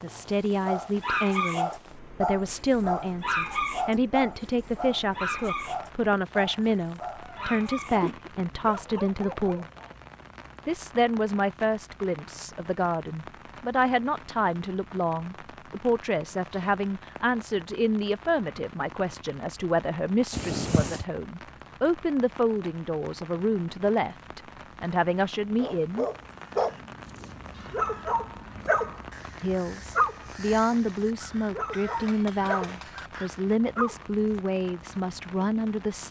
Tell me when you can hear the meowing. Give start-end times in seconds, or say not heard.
7.2-8.3, 20.3-21.1.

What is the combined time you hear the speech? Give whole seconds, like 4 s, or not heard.
32 s.